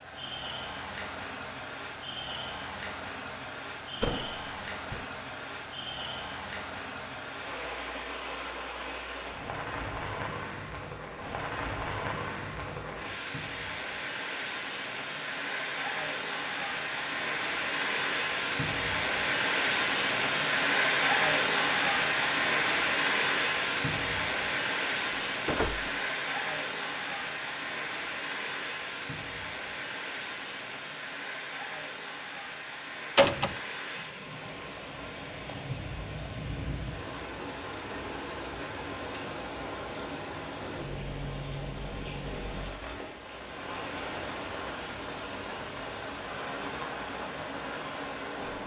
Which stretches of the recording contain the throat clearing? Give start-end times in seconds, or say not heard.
not heard.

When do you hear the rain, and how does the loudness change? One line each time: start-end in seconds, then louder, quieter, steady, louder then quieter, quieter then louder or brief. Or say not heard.
0.0-48.6 louder then quieter.